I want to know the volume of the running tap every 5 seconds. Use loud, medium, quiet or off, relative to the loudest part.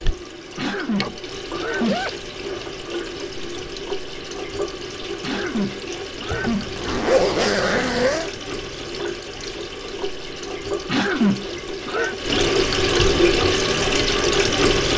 medium, medium, loud.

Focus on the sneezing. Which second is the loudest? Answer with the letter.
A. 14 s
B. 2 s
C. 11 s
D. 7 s
C.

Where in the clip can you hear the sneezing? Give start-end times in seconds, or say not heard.
0.6-2.0, 5.2-6.7, 10.8-12.2.